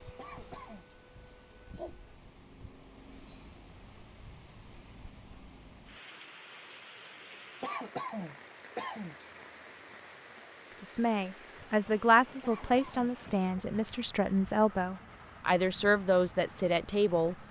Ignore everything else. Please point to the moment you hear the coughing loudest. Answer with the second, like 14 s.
8 s.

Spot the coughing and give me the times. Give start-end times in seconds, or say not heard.
0.1-0.8, 7.6-9.2, 12.4-13.7.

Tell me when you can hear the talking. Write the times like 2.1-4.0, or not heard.
10.8-17.4.